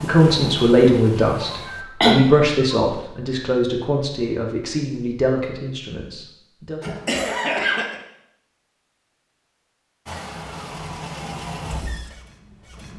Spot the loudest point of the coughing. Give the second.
2 s.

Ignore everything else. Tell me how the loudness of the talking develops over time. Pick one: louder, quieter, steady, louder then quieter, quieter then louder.
quieter.